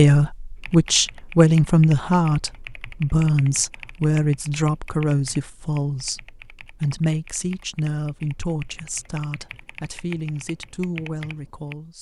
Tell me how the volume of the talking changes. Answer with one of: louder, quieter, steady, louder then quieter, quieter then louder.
quieter.